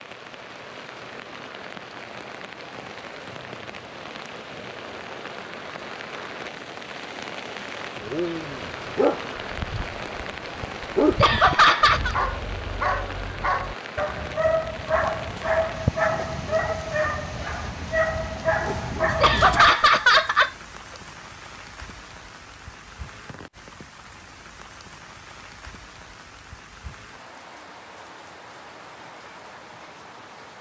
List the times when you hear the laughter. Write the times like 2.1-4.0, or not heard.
11.2-12.2, 19.2-20.5.